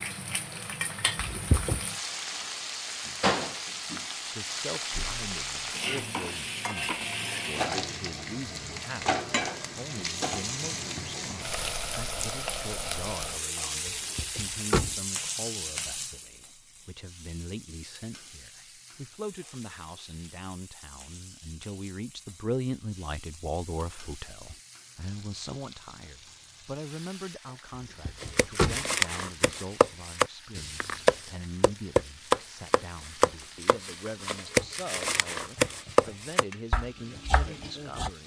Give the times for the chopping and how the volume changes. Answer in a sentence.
You can hear the chopping from 28.2 to 38.1 s, at a steady volume.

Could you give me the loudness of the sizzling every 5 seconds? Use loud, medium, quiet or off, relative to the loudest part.
loud, loud, loud, medium, quiet, quiet, quiet, quiet.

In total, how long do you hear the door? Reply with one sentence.
The door can be heard for 2 seconds in total.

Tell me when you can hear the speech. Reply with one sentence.
The speech can be heard from 3.8 to 38.2 s.